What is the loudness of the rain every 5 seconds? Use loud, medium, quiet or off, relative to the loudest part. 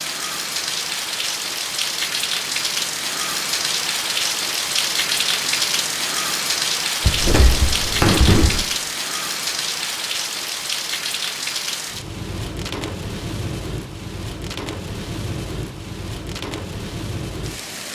loud, loud, medium, medium.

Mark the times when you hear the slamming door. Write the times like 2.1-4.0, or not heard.
7.0-8.7.